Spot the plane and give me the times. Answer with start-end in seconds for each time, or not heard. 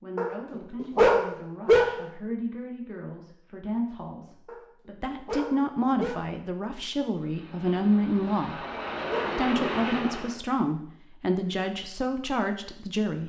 7.1-10.4.